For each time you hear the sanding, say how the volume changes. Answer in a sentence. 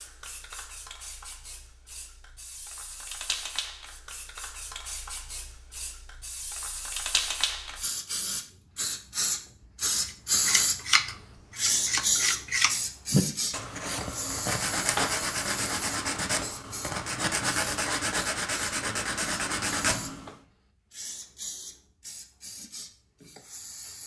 You can hear the sanding from 10.1 to 20.4 s, at a steady volume.